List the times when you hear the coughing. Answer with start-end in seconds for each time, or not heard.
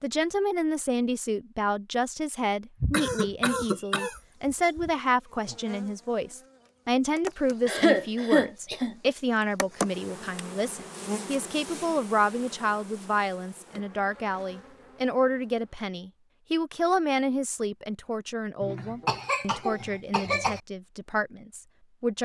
2.8-4.9, 7.7-8.9, 18.6-20.6.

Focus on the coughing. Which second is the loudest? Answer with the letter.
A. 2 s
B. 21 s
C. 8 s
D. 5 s
C.